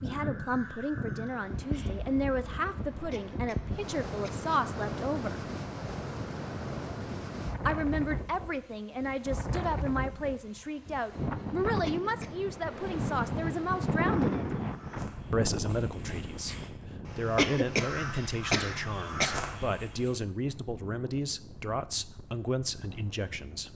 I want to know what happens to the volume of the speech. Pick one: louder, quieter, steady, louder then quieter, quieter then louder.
steady.